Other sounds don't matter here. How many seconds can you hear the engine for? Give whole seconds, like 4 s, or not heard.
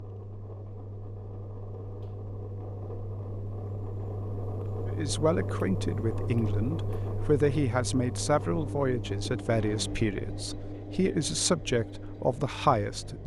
13 s.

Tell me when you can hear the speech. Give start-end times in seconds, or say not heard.
4.8-13.2.